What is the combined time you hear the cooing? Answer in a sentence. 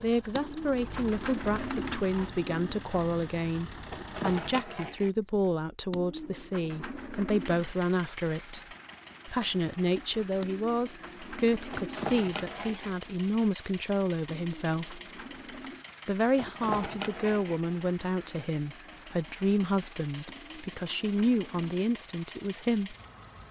You can hear the cooing for 9 seconds altogether.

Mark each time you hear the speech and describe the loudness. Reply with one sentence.
You can hear the speech from 0.0 to 15.0 s, at a steady volume; and from 16.1 to 22.9 s, at a steady volume.